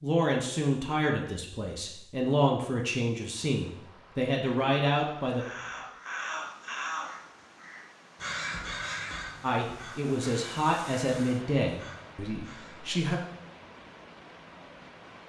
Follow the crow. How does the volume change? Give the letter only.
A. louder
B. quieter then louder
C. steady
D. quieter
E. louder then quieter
D.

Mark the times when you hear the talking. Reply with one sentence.
You can hear the talking from 0.0 to 5.5 s and from 9.4 to 13.2 s.